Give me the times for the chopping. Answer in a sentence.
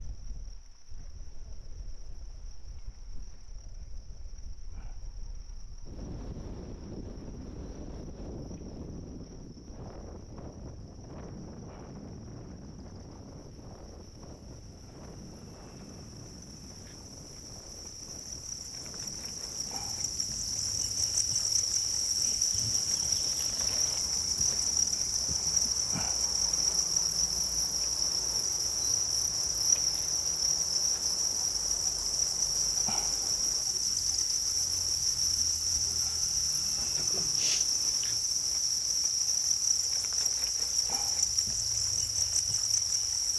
The chopping can't be heard in this clip.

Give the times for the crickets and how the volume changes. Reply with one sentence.
You can hear the crickets from 0.0 to 43.3 s, getting louder.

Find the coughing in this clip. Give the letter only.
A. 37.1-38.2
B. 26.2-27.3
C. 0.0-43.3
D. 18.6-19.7
A.